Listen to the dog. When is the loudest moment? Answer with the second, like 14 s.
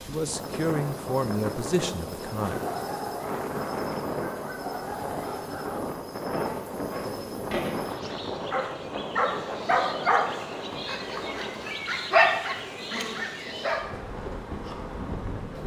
12 s.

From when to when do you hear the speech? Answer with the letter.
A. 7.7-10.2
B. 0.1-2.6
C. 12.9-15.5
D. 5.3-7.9
B.